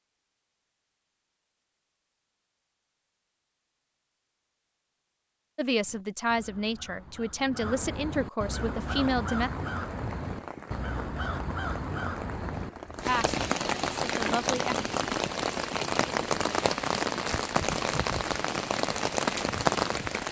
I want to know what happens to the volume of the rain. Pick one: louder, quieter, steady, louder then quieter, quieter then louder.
louder.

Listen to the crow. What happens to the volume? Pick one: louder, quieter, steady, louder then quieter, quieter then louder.
louder.